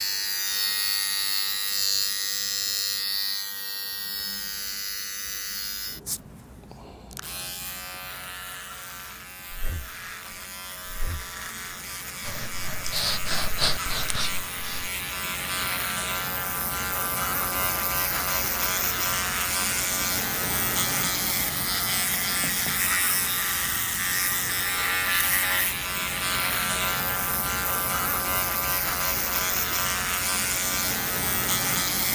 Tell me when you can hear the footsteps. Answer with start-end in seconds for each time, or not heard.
not heard.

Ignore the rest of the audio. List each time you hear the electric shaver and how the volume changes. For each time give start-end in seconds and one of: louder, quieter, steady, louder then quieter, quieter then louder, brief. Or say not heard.
0.0-32.1 quieter then louder.